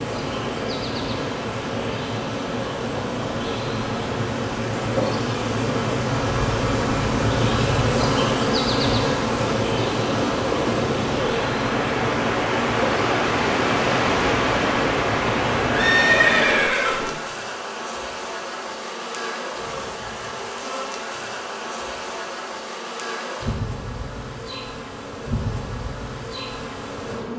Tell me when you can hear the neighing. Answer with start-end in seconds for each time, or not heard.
15.7-17.1.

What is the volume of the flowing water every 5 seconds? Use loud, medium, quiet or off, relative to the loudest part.
medium, medium, loud, loud, off, off.